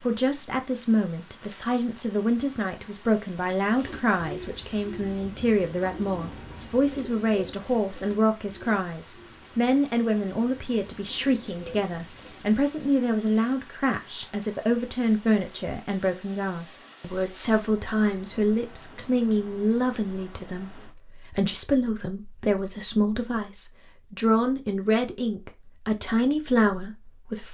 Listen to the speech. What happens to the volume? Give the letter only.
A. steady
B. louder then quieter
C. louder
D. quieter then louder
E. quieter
A.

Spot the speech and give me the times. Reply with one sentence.
You can hear the speech from 0.0 to 27.4 s.